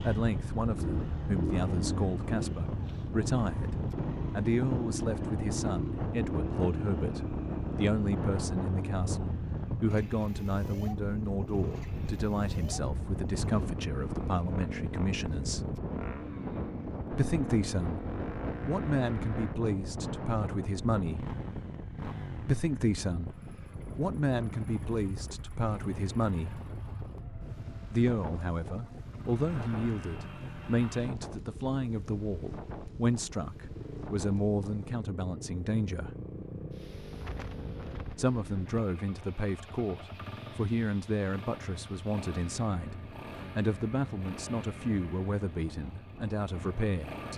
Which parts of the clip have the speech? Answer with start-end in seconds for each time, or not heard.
0.0-15.7, 17.1-18.1, 18.6-21.2, 22.4-26.6, 27.9-36.1, 38.1-47.3.